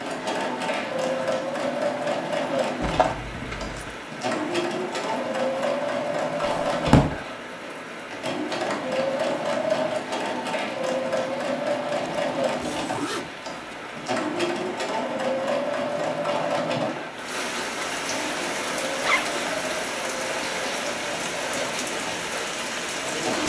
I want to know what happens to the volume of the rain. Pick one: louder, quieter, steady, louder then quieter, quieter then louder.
louder.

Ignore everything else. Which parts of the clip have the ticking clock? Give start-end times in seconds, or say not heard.
not heard.